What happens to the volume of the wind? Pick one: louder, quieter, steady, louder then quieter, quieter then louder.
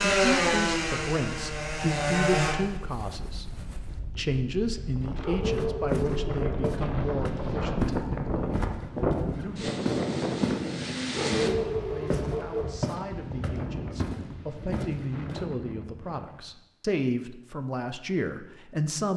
louder then quieter.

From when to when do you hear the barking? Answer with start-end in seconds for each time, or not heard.
5.2-6.8, 11.1-12.7.